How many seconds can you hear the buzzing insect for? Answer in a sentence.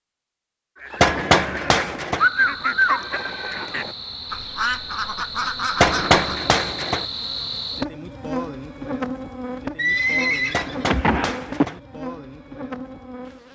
The buzzing insect can be heard for 11 seconds in total.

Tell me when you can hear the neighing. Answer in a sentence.
You can hear the neighing from 1.1 to 3.7 s and from 9.8 to 11.7 s.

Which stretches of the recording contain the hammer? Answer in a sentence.
The hammer can be heard from 1.0 to 2.2 s, from 5.8 to 7.0 s and from 10.5 to 11.8 s.